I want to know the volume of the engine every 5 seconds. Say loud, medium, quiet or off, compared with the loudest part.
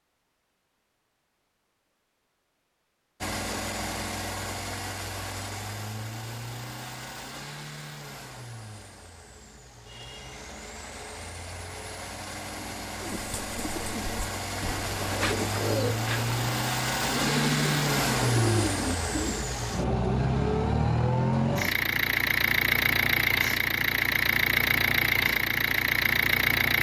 medium, quiet, quiet, loud, loud, loud.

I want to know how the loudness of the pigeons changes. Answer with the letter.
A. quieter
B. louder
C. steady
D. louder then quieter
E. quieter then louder
B.